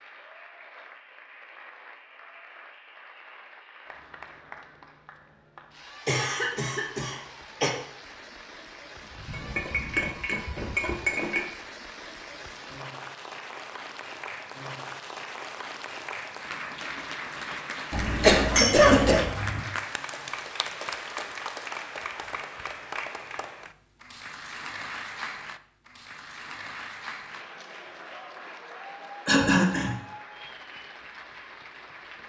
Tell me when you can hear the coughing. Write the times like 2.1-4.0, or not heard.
6.0-7.7, 17.9-19.2, 29.2-29.9.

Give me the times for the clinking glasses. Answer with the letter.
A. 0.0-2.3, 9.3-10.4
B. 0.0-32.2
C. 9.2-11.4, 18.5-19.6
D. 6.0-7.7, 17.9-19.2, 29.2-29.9
C.